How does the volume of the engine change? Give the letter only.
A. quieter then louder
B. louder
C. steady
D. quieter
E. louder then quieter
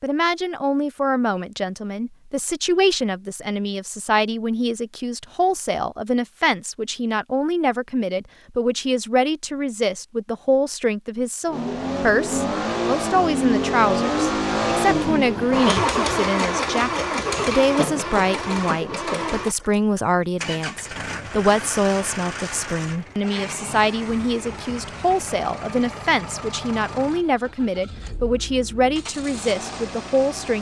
D.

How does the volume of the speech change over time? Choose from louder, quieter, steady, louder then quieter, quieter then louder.
steady.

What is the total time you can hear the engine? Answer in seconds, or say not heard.
19 s.